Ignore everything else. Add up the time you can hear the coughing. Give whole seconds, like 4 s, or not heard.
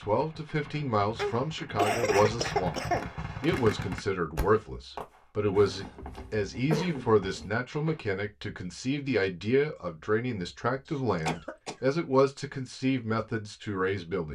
5 s.